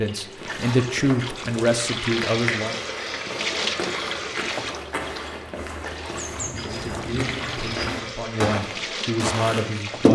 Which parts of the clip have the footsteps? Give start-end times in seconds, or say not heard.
0.3-10.1.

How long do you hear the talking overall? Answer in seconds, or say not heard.
6 s.